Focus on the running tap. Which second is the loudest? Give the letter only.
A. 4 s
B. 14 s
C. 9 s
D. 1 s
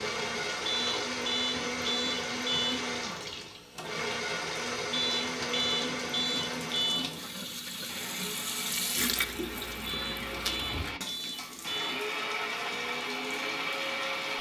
C.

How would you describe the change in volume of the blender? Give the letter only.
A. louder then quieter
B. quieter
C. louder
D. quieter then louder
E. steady
D.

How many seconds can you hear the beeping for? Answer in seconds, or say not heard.
7 s.